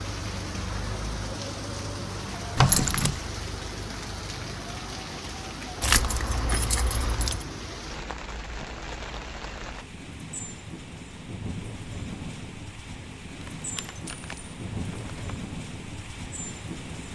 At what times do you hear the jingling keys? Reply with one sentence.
The jingling keys can be heard from 2.5 to 3.2 s, from 5.8 to 7.5 s and from 13.4 to 15.4 s.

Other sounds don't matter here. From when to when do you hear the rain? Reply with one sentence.
You can hear the rain from 0.0 to 17.1 s.